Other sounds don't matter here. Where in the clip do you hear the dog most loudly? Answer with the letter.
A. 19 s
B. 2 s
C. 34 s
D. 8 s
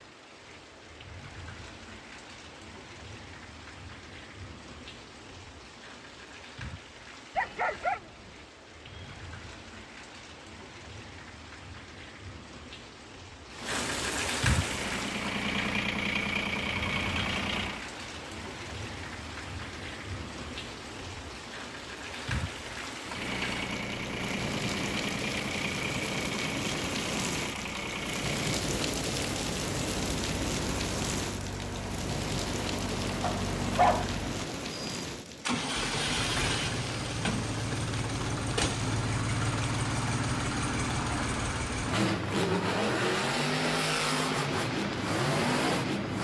C.